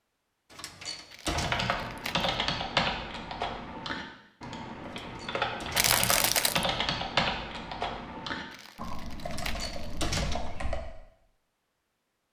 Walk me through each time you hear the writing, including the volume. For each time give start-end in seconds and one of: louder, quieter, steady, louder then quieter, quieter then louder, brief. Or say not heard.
not heard.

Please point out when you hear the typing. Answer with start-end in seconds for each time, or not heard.
1.2-10.8.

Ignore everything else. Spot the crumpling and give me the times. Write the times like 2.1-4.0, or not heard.
1.1-2.4, 5.8-6.7, 8.5-10.2.